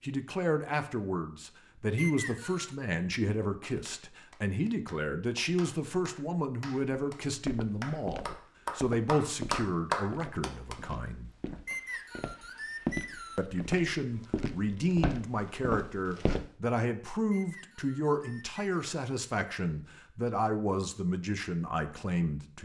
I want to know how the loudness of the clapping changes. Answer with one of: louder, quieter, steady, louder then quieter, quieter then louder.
louder.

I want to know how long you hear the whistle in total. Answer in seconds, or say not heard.
4 s.